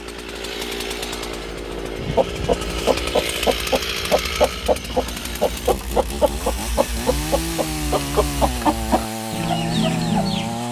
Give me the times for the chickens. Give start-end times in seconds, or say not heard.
1.8-10.6.